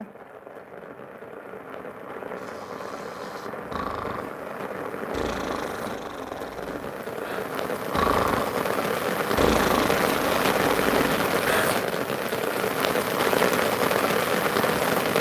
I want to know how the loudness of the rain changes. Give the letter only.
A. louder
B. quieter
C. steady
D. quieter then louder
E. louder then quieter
A.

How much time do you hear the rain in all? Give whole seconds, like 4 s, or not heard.
15 s.